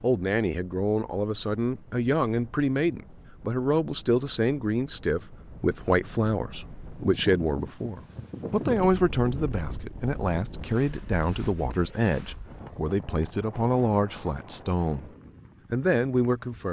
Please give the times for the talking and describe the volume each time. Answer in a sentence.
The talking can be heard from 0.0 to 15.1 s, at a steady volume; and briefly from 15.7 to 16.6 s.